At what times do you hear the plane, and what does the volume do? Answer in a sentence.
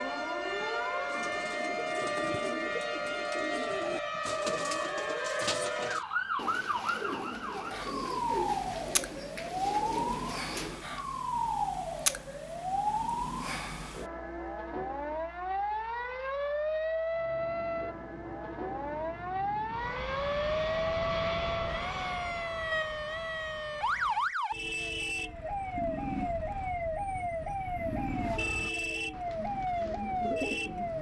The plane can be heard from 17.1 to 24.4 s, getting louder then quieter.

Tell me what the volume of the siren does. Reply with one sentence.
The loudness of the siren stays about the same.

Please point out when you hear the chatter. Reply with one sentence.
The chatter can't be heard in this clip.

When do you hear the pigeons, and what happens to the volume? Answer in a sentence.
The pigeons can be heard from 1.1 to 10.8 s, at a steady volume; and briefly from 28.1 to 30.9 s.